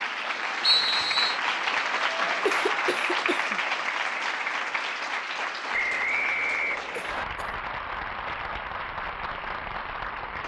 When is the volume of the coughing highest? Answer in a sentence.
The volume of the coughing peaks at 3 seconds.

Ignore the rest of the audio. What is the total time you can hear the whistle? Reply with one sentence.
The whistle can be heard for 2 seconds in total.